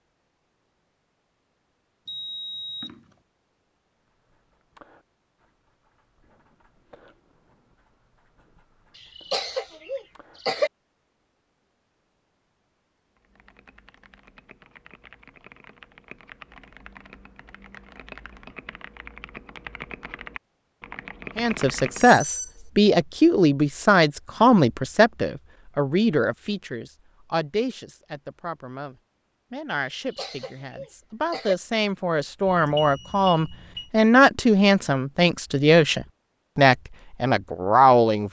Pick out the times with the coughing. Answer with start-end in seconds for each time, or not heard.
8.9-10.7, 30.0-31.6.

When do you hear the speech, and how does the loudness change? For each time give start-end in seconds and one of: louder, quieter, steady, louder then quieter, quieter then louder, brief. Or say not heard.
21.4-38.2 quieter then louder.